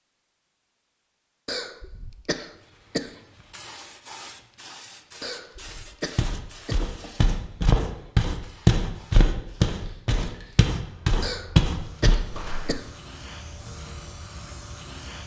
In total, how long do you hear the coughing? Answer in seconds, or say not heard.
5 s.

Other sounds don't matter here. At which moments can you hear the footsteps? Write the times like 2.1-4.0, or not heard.
6.2-12.8.